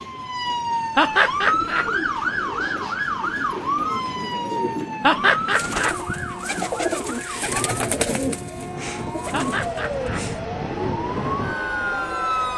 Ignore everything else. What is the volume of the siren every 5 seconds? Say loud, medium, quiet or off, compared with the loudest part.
loud, medium, loud.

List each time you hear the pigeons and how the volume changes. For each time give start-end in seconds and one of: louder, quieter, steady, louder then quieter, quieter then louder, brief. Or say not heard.
1.3-12.2 louder then quieter.